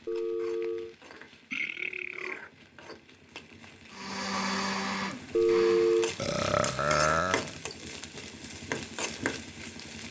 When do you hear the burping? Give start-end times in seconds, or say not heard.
1.5-2.4, 6.2-7.5.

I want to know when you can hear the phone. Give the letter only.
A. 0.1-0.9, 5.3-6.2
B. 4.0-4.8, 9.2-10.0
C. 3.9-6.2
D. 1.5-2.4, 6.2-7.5
A.